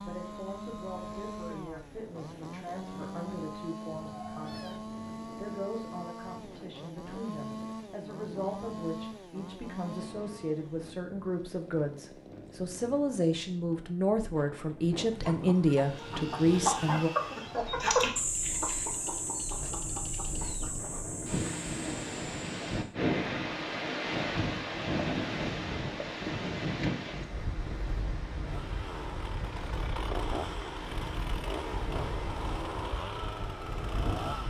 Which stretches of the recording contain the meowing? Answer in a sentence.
The meowing can be heard from 4.0 to 4.8 s.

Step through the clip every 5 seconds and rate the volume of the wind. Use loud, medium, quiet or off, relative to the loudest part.
quiet, quiet, quiet, medium, loud, loud, medium.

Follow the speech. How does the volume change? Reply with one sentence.
The loudness of the speech goes up.